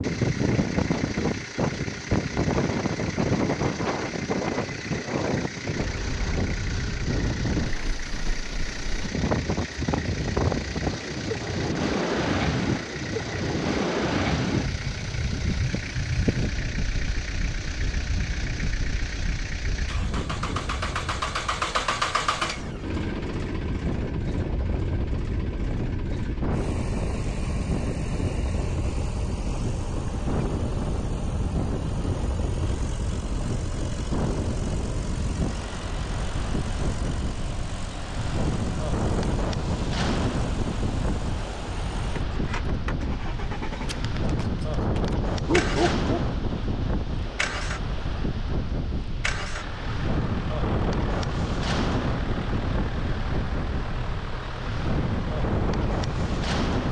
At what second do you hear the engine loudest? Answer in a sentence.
The loudest moment of the engine is at 22 seconds.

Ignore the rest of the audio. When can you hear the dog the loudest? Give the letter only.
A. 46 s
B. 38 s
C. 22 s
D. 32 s
A.